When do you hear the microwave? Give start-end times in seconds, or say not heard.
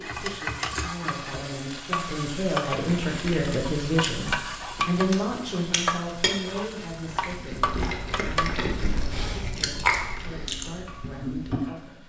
not heard.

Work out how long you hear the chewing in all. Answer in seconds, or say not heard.
9 s.